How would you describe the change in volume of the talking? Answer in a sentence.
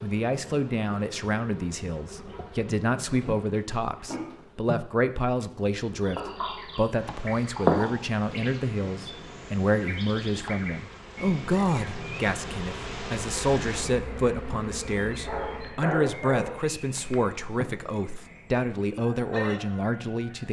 The loudness of the talking stays about the same.